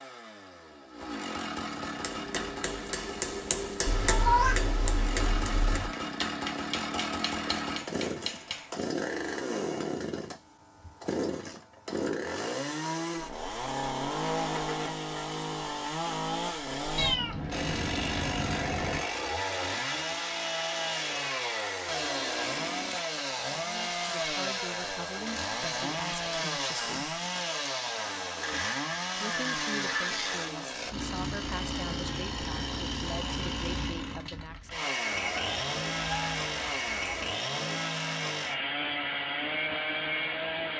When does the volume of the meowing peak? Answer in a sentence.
The loudest moment of the meowing is at 4 seconds.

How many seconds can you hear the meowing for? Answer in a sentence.
You can hear the meowing for 6 seconds altogether.